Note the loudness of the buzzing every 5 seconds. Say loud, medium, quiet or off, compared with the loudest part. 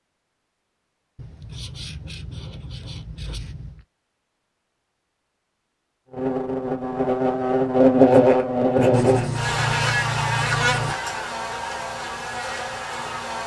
off, loud, medium.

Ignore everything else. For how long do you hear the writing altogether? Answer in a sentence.
The writing can be heard for 5 seconds in total.